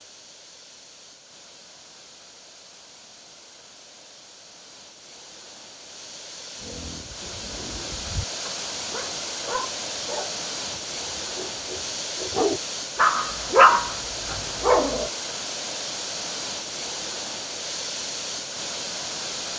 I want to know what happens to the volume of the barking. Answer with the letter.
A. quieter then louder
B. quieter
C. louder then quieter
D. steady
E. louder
E.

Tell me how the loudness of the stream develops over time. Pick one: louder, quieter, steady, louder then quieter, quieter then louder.
louder.